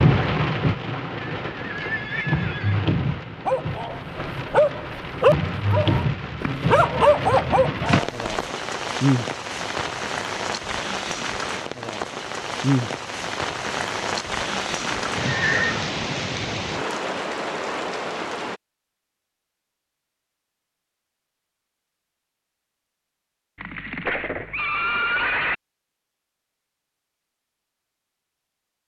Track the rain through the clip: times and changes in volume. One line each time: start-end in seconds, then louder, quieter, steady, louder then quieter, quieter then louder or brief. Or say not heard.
0.0-18.6 steady.